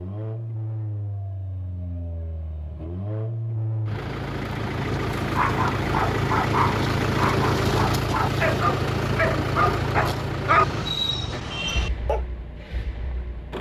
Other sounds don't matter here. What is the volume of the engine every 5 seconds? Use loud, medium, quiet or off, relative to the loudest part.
medium, loud, medium.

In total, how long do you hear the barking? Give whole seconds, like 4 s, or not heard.
7 s.